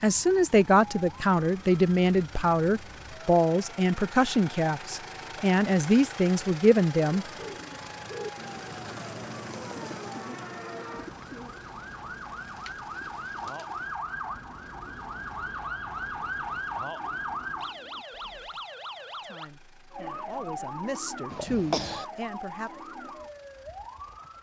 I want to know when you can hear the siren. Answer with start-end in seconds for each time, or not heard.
0.0-24.3.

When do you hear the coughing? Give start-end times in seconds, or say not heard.
21.3-22.1.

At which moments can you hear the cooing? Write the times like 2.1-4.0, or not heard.
7.0-18.7.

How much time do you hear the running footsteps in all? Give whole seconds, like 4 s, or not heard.
not heard.